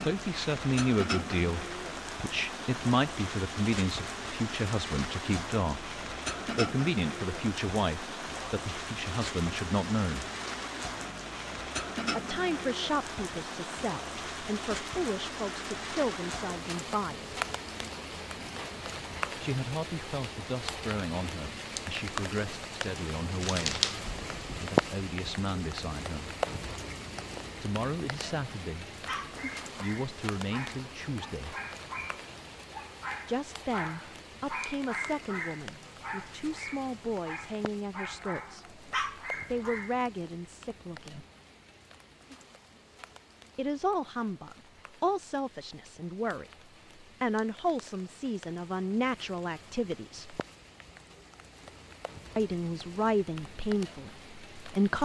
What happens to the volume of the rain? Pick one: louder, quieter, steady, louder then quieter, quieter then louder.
quieter.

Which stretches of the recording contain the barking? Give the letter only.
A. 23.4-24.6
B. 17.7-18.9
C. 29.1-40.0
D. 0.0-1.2
C.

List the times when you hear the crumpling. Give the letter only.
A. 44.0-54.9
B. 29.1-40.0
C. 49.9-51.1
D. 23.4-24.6
D.